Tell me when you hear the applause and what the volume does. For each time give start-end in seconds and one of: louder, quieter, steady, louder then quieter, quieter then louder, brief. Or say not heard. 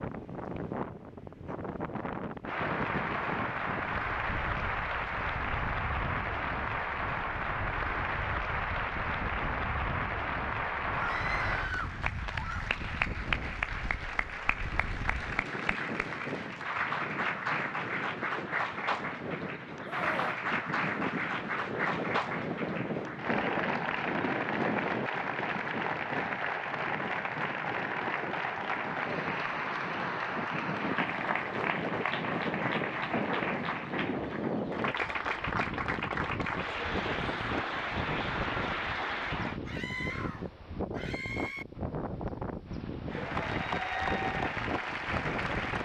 2.5-39.6 steady
43.0-45.8 brief.